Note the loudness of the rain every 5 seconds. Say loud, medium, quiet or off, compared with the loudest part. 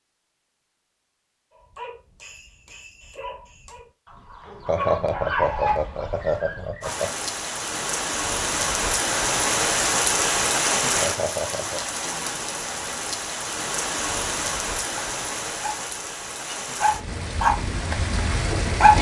off, loud, loud, medium.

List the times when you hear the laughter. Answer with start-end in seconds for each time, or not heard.
4.7-7.1, 11.0-11.8.